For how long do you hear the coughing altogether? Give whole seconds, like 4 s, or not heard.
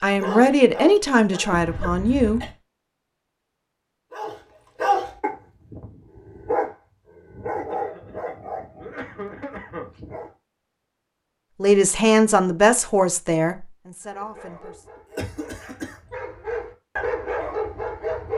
4 s.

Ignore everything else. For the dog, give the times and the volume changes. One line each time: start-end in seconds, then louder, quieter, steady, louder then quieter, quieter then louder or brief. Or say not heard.
0.0-1.6 brief
4.1-10.3 quieter
14.0-18.3 louder.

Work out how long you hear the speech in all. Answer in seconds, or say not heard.
6 s.